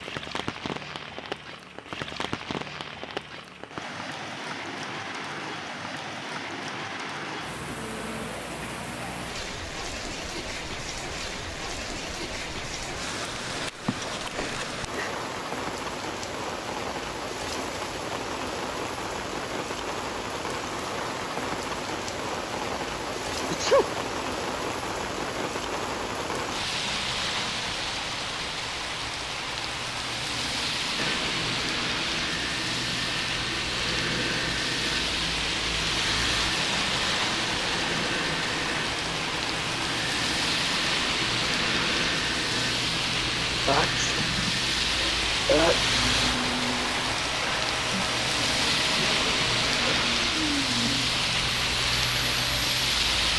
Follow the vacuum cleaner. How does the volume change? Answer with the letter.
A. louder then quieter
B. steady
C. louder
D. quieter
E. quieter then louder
B.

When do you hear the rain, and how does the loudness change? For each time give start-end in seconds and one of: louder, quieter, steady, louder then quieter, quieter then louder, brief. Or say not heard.
0.0-53.3 louder.